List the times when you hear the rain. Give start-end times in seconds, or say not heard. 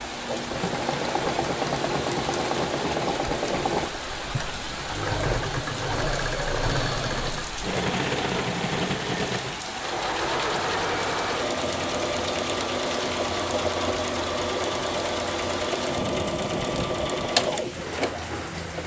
0.0-18.8.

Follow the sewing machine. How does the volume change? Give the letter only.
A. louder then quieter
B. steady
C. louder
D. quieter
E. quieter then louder
B.